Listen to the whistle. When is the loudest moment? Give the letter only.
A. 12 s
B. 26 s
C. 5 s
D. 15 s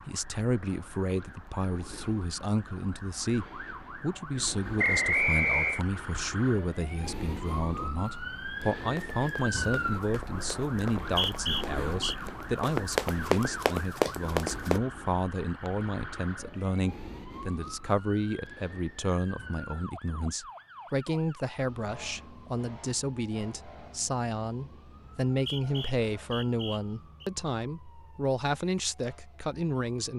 C.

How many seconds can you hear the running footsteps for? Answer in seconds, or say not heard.
6 s.